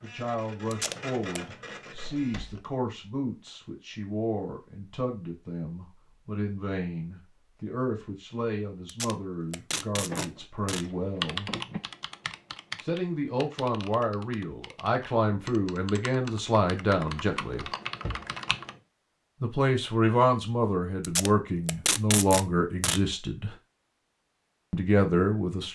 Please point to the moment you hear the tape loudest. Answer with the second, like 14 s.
22 s.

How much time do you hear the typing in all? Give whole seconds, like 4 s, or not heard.
8 s.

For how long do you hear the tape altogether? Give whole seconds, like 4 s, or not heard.
5 s.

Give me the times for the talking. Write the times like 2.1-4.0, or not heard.
0.0-11.5, 12.8-17.6, 19.4-23.6, 24.7-25.6.